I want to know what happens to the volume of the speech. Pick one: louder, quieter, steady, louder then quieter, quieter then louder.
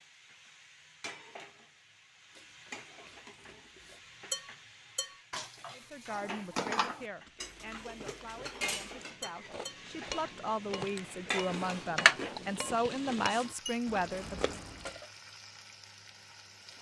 quieter then louder.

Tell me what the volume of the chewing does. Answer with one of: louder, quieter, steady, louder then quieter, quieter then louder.
louder then quieter.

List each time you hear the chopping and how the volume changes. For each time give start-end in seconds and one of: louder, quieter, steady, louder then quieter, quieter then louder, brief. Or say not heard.
not heard.